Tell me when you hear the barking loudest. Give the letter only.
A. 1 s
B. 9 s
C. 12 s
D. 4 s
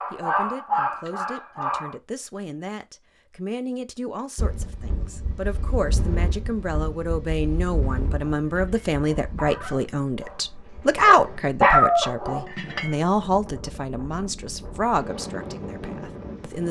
C.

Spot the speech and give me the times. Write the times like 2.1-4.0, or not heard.
0.1-16.6.